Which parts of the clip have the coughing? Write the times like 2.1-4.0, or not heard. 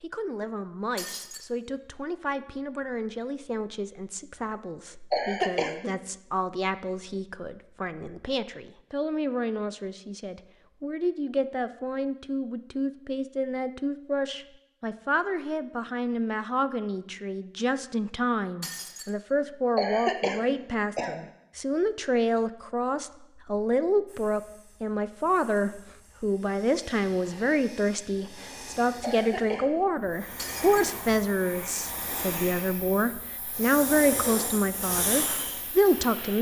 5.1-5.9, 19.8-21.2, 29.0-29.8.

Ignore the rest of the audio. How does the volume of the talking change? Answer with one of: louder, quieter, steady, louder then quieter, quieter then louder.
louder.